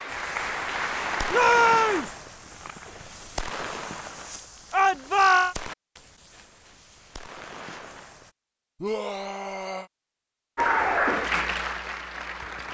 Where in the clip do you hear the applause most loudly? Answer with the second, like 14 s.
11 s.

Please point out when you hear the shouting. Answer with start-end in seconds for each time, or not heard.
1.3-2.1, 4.7-5.5, 8.8-9.9.